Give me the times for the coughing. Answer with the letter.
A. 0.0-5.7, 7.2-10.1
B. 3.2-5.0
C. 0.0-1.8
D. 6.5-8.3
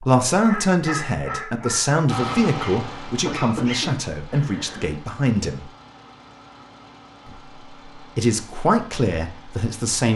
B.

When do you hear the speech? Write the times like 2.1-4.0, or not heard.
0.0-5.7, 7.2-10.1.